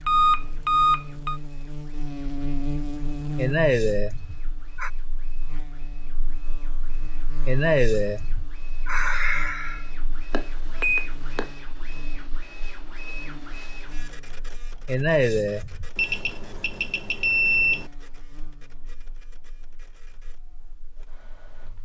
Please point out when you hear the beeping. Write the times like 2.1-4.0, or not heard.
0.1-1.4, 10.3-11.5, 15.9-17.9.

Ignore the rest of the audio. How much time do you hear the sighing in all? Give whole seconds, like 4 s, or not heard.
5 s.